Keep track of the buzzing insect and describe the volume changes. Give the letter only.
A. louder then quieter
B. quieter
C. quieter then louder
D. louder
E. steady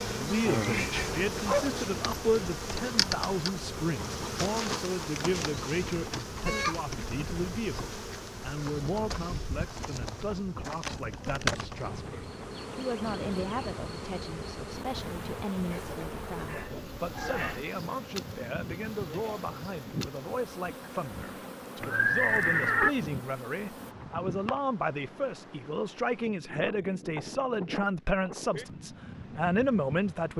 B.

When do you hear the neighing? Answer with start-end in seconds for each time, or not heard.
21.8-22.9.